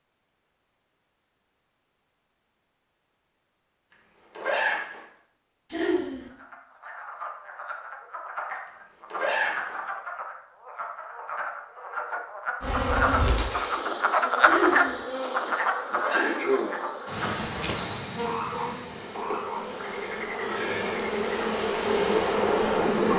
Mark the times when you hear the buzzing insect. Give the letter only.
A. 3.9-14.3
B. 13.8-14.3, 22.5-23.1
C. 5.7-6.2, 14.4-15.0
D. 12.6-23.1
D.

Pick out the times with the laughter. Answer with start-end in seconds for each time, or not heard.
5.7-6.2, 14.4-15.0.